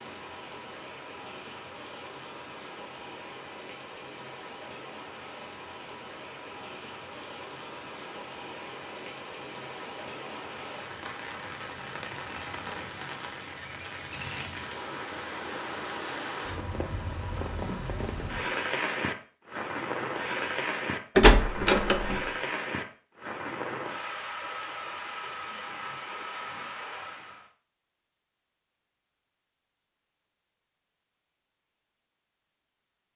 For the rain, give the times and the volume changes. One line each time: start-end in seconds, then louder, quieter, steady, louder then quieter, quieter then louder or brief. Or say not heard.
0.0-27.5 louder.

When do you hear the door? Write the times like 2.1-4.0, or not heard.
21.1-22.4.